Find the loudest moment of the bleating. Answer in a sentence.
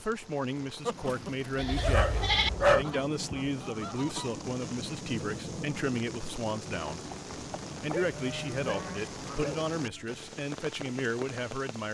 The volume of the bleating peaks at 2 seconds.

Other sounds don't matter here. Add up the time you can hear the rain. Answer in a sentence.
The rain can be heard for 12 seconds in total.